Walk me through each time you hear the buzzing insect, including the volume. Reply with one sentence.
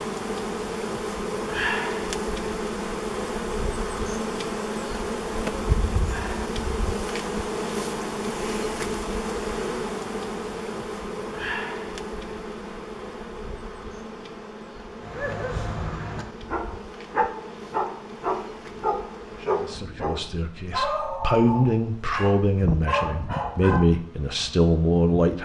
The buzzing insect can be heard from 0.0 to 25.4 s, getting quieter.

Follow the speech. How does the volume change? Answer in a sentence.
The loudness of the speech goes up.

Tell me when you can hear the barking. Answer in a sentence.
The barking can be heard from 15.0 to 23.9 s.